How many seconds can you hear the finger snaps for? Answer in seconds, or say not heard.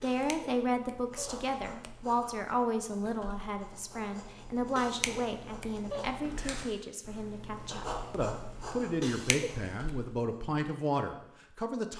4 s.